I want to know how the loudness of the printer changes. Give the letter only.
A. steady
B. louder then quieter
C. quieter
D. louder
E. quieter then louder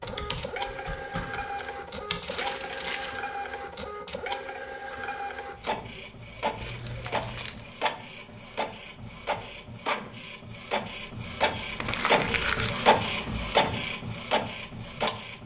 D.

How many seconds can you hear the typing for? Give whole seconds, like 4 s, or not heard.
2 s.